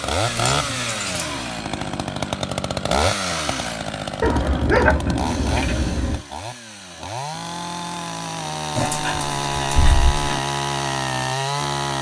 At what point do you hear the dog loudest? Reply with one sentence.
The loudest moment of the dog is at 5 seconds.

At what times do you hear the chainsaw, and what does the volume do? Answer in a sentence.
The chainsaw can be heard from 0.0 to 11.9 s, getting quieter then louder.